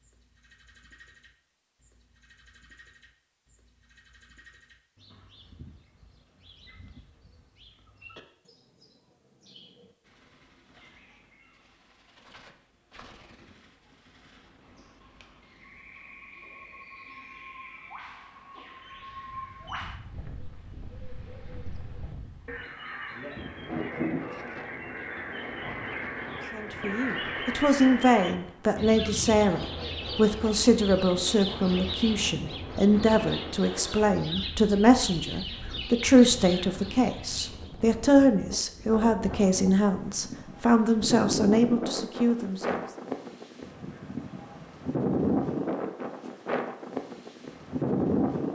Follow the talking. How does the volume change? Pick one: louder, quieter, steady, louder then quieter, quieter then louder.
steady.